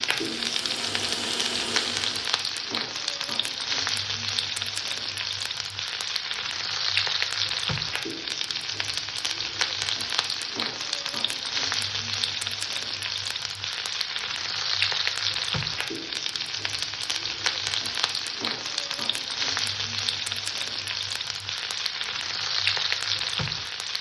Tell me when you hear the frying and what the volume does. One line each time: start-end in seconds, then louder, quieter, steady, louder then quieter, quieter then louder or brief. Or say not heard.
0.0-23.9 steady.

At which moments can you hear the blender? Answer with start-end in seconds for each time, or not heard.
0.1-2.4.